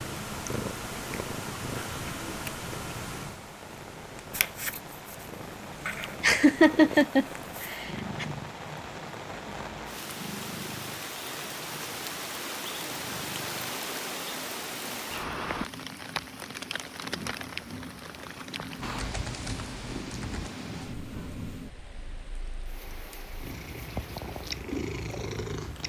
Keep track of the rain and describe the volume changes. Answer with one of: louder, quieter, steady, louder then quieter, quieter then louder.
louder then quieter.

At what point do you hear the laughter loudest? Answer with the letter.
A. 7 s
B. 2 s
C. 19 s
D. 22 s
A.